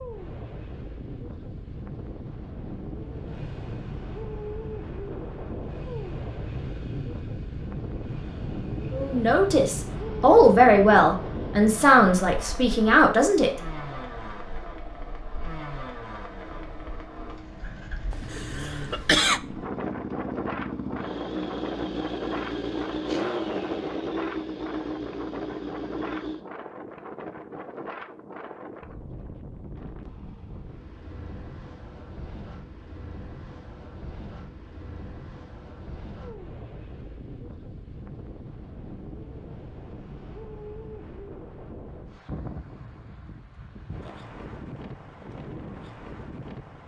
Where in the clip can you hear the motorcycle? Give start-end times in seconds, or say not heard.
3.1-26.4.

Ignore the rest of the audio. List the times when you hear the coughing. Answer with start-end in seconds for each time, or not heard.
18.1-19.4.